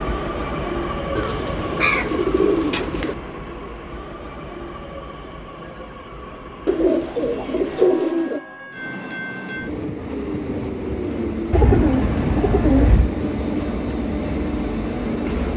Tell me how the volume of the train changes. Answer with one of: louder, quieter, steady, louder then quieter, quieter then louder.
quieter then louder.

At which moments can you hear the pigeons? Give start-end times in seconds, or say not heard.
1.1-3.1, 6.7-8.4, 11.5-13.2.